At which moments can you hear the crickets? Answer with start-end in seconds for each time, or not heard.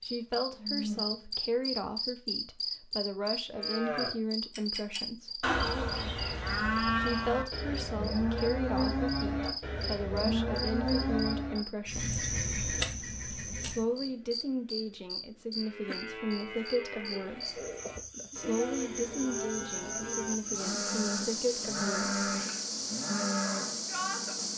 0.0-24.5.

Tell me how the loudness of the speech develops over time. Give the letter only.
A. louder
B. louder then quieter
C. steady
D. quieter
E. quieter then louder
C.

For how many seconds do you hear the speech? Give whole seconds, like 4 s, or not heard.
19 s.